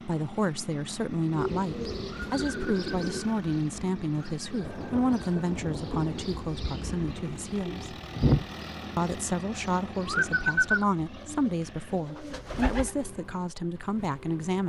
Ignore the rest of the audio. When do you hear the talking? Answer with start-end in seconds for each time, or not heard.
0.1-8.0, 8.9-14.6.